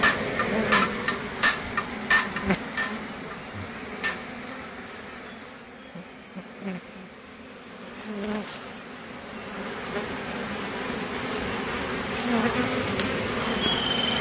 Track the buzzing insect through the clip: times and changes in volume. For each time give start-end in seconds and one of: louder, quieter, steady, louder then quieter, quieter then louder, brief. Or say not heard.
0.0-14.1 quieter then louder.